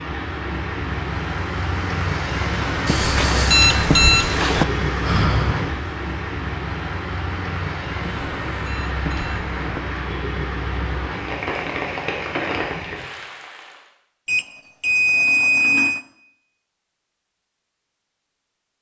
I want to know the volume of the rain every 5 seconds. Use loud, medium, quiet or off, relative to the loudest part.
loud, loud, loud, off.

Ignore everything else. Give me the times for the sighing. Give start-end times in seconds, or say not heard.
5.0-5.8.